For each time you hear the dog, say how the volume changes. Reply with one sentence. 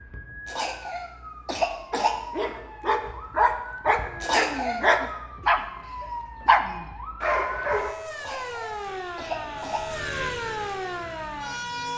You can hear the dog from 1.9 to 8.0 s, getting louder.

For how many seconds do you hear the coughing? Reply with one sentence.
The coughing can be heard for 4 seconds in total.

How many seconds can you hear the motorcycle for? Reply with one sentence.
You can hear the motorcycle for 3 seconds altogether.